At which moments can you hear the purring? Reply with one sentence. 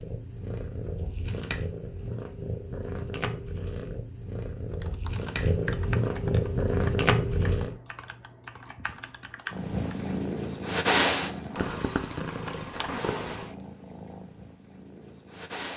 The purring can be heard from 0.0 to 7.8 s and from 9.5 to 15.7 s.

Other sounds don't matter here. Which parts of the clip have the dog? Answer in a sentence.
You can't hear the dog here.